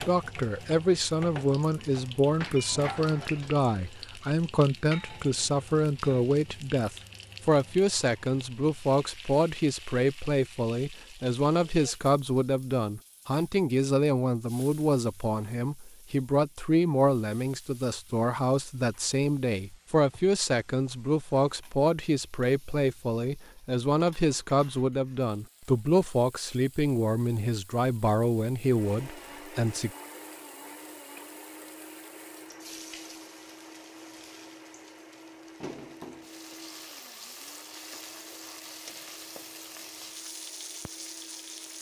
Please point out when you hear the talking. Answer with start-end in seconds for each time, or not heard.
0.0-29.9.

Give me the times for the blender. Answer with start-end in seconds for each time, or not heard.
28.6-41.7.